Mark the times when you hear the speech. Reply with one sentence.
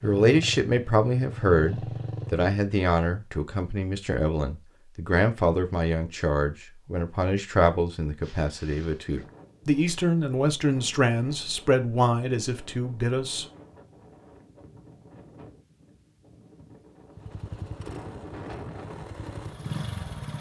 The speech can be heard from 0.0 to 13.4 s.